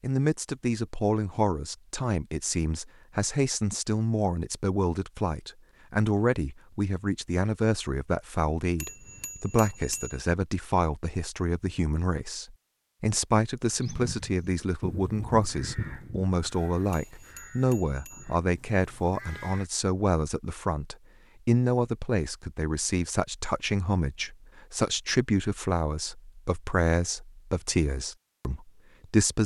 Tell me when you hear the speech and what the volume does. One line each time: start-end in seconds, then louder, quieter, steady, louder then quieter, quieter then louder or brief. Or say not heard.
0.0-29.4 steady.